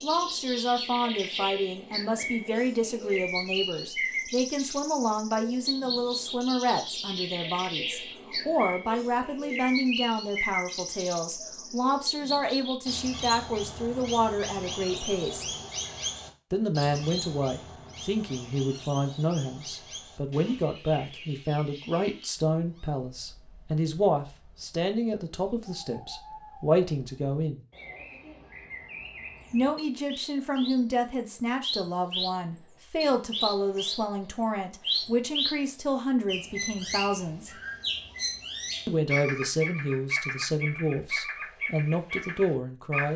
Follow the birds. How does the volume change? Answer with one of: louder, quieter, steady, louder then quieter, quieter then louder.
quieter then louder.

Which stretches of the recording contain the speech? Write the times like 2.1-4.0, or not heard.
0.0-15.4, 16.5-27.6, 29.5-37.6, 38.9-43.1.